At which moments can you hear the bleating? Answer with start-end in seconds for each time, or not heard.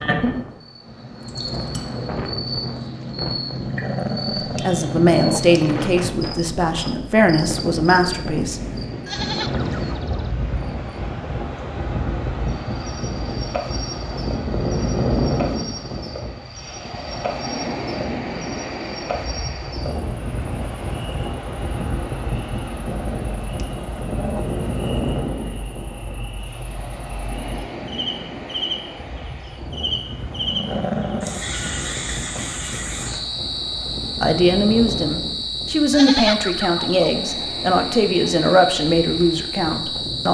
9.1-10.3, 35.9-37.1.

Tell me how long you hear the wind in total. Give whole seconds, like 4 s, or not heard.
40 s.